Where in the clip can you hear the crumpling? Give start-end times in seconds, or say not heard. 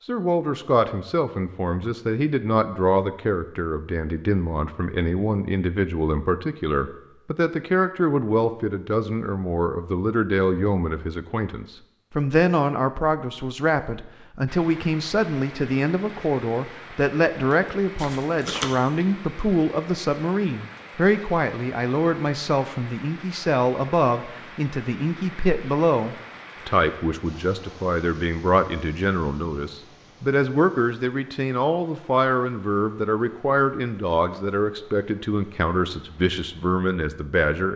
17.9-18.7.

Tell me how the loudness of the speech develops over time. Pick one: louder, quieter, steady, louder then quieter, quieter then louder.
steady.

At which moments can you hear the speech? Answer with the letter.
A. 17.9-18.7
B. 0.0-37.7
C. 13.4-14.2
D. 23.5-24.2
B.